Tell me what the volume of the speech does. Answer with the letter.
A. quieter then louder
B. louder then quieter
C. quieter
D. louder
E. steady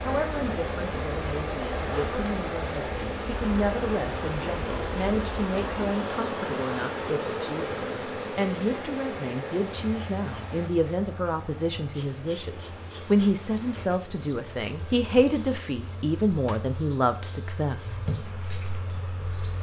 D.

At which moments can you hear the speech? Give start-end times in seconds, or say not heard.
0.0-17.9.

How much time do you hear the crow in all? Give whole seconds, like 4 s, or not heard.
not heard.